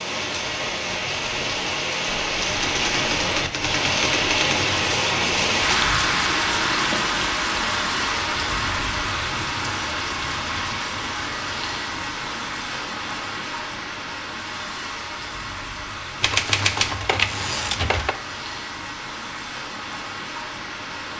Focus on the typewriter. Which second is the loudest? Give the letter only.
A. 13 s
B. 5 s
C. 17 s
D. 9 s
C.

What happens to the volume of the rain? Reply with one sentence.
The volume of the rain goes down.